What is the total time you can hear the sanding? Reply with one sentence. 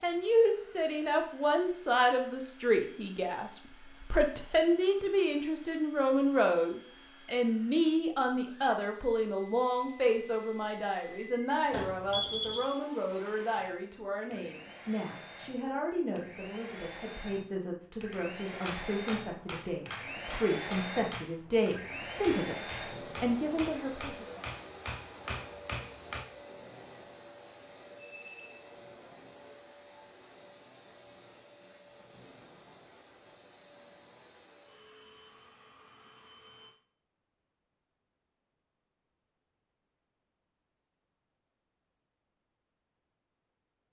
You can't hear the sanding here.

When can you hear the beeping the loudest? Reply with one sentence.
The loudest moment of the beeping is at 12 seconds.